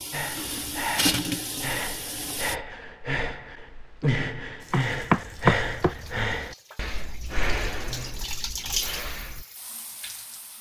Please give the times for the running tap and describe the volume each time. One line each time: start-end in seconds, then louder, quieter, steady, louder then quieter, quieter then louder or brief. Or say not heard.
0.0-2.5 brief
4.6-10.5 louder then quieter.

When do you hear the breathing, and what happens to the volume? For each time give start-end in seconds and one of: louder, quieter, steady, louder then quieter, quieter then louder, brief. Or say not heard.
0.1-9.4 louder then quieter.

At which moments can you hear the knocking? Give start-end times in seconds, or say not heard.
4.7-6.2.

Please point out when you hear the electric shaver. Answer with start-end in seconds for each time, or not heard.
not heard.